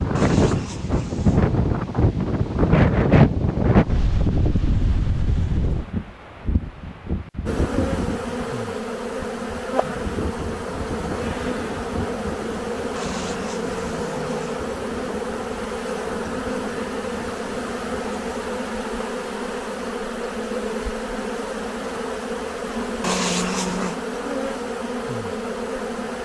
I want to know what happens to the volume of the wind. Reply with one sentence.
The loudness of the wind goes down.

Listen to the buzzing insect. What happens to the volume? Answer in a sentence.
The volume of the buzzing insect stays about the same.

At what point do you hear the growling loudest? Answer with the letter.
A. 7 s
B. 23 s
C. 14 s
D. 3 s
B.